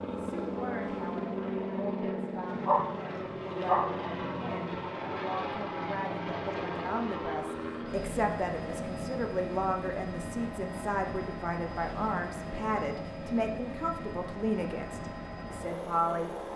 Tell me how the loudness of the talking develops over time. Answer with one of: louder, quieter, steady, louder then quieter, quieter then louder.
louder.